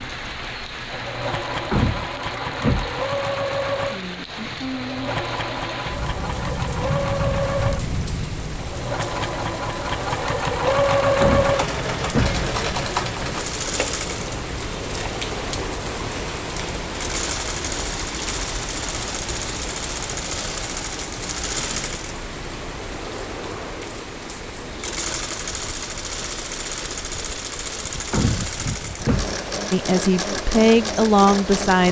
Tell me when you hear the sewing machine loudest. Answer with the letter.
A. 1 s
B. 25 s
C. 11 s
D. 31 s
C.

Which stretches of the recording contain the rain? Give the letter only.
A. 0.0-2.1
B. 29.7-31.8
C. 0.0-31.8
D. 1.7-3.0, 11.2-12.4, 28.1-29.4
C.